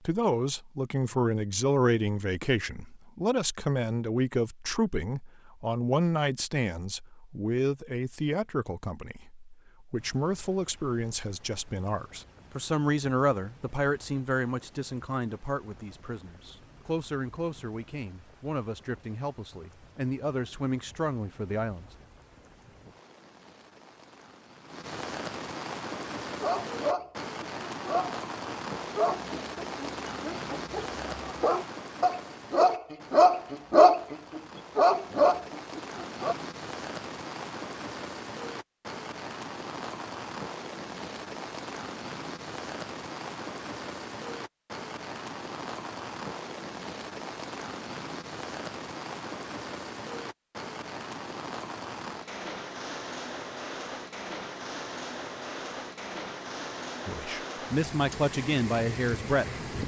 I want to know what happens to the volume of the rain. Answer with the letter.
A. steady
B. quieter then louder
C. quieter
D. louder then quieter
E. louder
E.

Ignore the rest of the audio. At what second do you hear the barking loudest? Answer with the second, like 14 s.
34 s.